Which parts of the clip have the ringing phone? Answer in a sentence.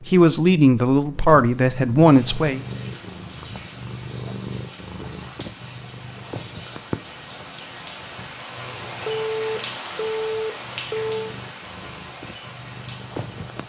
You can hear the ringing phone from 9.1 to 11.3 s.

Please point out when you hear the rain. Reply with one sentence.
The rain can be heard from 2.0 to 13.6 s.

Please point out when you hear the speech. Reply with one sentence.
The speech can be heard from 0.1 to 2.6 s.